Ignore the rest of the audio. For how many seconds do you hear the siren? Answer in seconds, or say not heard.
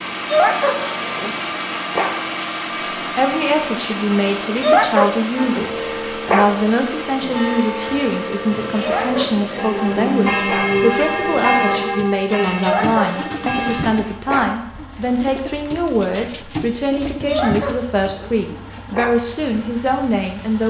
not heard.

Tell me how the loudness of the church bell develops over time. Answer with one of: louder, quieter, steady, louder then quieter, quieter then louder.
louder then quieter.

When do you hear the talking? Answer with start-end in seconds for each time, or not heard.
3.1-20.6.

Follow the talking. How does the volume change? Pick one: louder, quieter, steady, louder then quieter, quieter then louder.
steady.